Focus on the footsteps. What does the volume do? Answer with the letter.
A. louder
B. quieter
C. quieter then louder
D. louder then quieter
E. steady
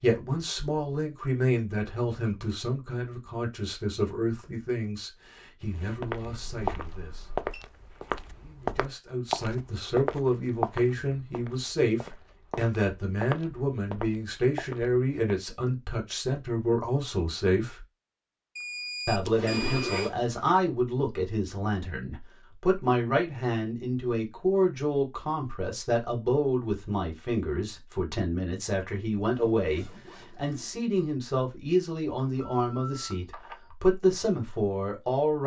C.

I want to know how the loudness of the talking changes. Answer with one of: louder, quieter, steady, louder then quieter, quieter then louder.
steady.